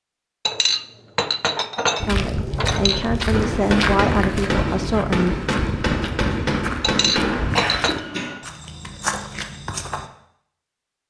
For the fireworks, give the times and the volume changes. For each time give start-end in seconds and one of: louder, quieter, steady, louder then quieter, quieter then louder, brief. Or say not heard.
3.3-7.6 steady.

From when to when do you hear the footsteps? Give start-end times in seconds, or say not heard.
1.9-10.1.